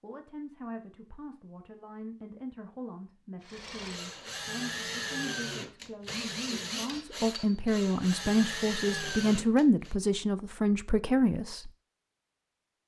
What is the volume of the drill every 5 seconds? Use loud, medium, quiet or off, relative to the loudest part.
loud, loud, off.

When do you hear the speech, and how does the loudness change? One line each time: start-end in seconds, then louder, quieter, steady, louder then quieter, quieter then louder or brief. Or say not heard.
0.0-11.7 louder.